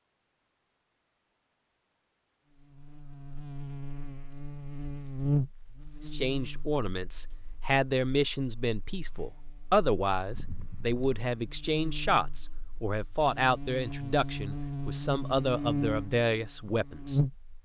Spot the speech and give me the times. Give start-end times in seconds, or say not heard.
6.0-17.2.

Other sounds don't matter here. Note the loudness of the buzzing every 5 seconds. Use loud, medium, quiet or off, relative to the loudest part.
medium, loud, medium, loud.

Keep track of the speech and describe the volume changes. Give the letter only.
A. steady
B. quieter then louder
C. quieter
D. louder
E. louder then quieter
A.